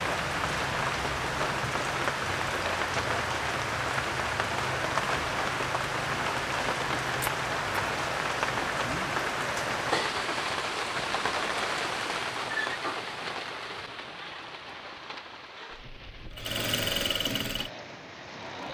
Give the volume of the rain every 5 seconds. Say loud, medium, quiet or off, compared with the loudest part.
loud, loud, loud, quiet.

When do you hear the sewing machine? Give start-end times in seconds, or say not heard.
16.2-18.6.